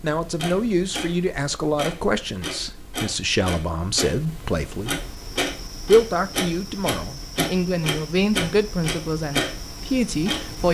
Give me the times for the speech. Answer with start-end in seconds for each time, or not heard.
0.0-5.0, 5.8-10.6.